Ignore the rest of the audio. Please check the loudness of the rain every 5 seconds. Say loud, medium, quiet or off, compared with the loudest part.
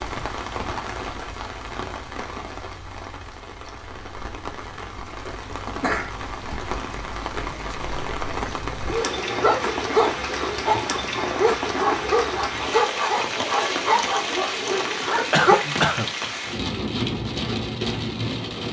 medium, loud, loud, loud.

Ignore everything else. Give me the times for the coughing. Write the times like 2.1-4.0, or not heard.
5.2-6.1, 15.3-16.1.